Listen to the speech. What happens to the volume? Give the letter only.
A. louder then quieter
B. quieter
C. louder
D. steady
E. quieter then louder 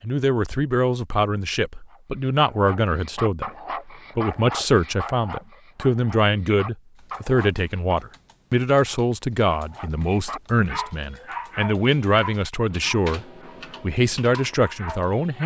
D.